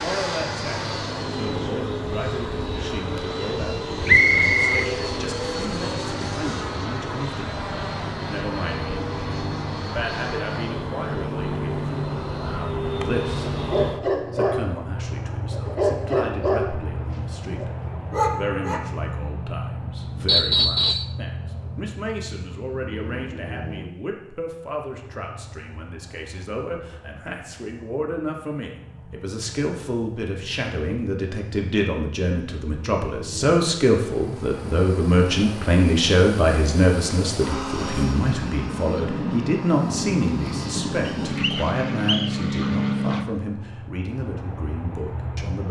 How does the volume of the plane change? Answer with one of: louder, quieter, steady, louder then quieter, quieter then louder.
quieter then louder.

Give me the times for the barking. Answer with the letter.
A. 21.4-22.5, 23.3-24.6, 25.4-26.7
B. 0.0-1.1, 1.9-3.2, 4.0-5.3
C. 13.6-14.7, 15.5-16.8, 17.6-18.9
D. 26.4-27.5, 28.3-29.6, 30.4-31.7
C.